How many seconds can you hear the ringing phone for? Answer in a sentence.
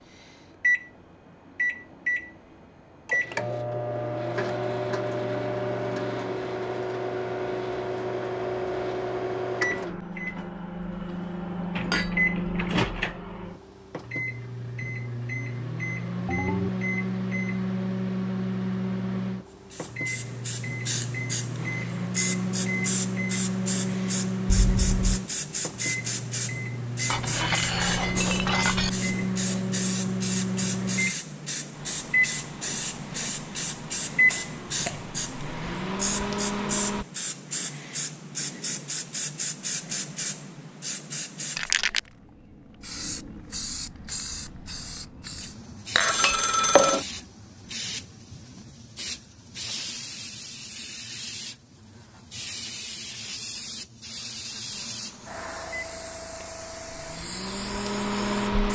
You can hear the ringing phone for 2 seconds altogether.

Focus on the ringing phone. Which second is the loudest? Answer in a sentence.
The loudest moment of the ringing phone is at 47 seconds.